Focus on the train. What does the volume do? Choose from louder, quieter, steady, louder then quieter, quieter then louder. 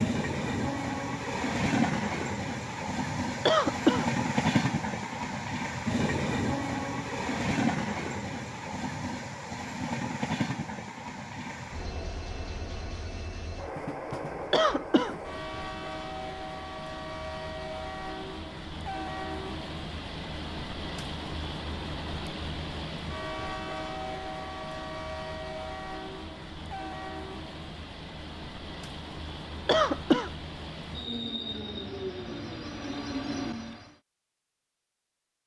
quieter.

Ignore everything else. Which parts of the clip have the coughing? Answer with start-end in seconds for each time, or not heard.
3.5-4.0, 14.5-15.2, 29.6-30.3.